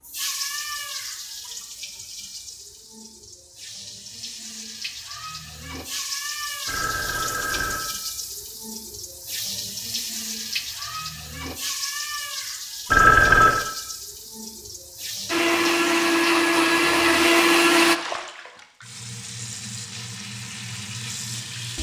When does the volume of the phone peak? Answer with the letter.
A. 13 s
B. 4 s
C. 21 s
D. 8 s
A.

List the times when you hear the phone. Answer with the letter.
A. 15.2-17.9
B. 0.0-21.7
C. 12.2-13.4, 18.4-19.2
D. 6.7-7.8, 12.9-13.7
D.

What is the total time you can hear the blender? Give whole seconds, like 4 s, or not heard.
3 s.